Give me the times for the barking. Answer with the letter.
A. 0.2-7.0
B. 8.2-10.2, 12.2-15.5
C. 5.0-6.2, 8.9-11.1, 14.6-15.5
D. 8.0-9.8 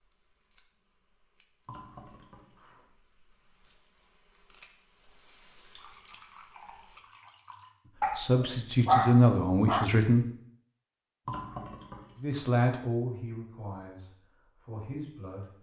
D.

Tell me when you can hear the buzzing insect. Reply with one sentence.
The buzzing insect can be heard from 0.2 to 7.0 s.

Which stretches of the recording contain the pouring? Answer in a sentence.
You can hear the pouring from 1.6 to 2.8 s, from 5.5 to 7.7 s and from 11.2 to 12.2 s.